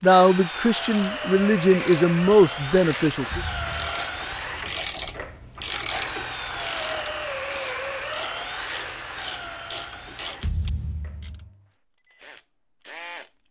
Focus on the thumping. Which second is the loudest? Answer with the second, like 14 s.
11 s.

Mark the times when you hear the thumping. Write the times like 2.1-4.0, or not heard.
3.3-4.0, 10.4-11.5.